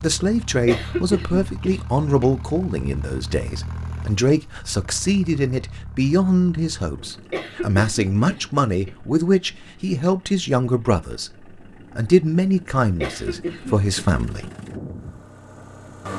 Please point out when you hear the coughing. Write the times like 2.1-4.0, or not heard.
0.7-2.3, 7.3-8.9, 13.0-14.1.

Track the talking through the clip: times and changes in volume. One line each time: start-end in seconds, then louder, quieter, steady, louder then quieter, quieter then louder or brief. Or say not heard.
0.0-14.5 steady.